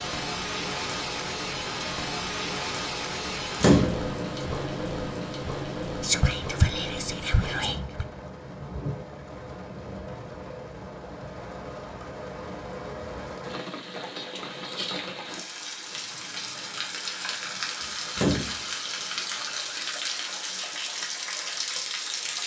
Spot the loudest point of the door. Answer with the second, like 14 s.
4 s.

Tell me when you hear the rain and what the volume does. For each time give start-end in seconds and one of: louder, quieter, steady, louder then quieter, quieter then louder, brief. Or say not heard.
0.0-22.4 quieter then louder.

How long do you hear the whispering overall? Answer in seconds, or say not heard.
2 s.